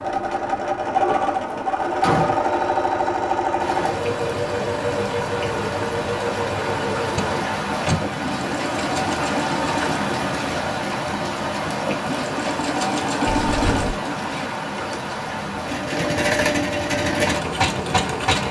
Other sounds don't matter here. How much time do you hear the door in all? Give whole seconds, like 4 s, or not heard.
3 s.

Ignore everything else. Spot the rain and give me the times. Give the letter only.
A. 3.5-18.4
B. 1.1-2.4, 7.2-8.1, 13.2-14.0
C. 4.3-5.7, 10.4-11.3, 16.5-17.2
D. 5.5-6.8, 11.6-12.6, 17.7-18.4
A.